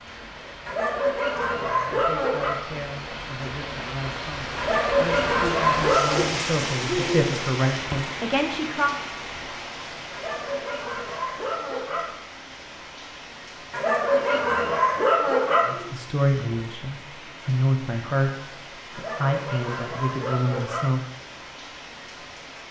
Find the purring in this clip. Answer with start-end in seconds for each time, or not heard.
not heard.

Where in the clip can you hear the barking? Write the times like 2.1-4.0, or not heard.
0.7-2.5, 4.5-6.3, 10.1-12.2, 13.7-15.8, 18.9-20.9.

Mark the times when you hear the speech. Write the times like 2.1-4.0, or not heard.
1.6-8.9, 15.7-18.3, 18.9-21.1.